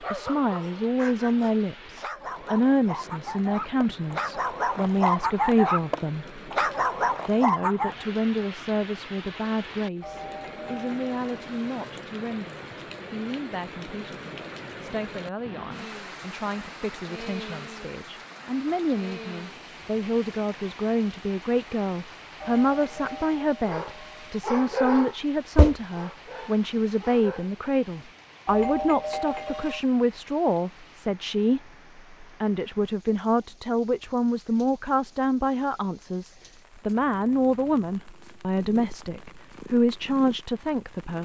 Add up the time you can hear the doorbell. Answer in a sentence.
The doorbell can be heard for 5 seconds in total.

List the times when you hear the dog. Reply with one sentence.
You can hear the dog from 0.0 to 8.1 s and from 23.6 to 27.6 s.